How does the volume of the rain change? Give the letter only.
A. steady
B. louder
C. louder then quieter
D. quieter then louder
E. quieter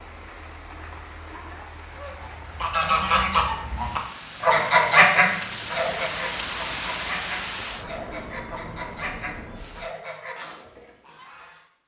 C.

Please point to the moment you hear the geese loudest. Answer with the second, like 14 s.
5 s.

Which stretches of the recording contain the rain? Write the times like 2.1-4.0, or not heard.
0.0-9.9.